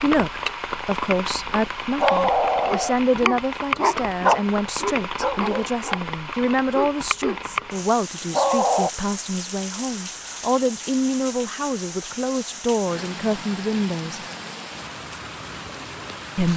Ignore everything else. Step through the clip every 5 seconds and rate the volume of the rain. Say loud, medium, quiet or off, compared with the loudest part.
loud, loud, medium, medium.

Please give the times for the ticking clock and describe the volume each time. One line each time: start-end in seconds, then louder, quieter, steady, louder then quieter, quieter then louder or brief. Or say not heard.
not heard.